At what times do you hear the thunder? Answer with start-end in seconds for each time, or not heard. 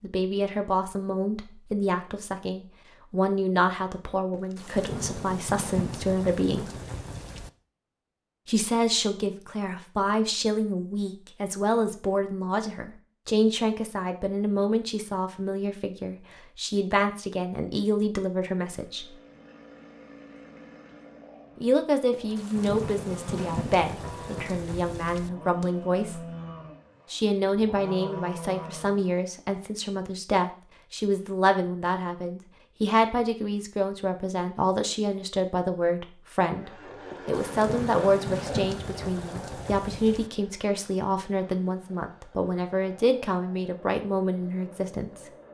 4.3-7.5, 22.1-25.3, 37.1-40.3.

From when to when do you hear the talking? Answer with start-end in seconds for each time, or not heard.
0.0-6.7, 8.4-19.1, 21.6-26.3, 27.1-45.3.